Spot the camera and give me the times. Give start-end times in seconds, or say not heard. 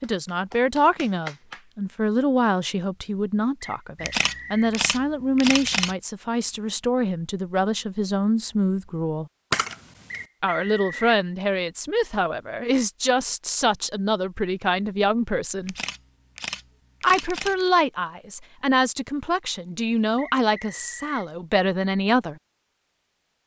4.0-6.0, 9.5-10.2, 15.6-17.7.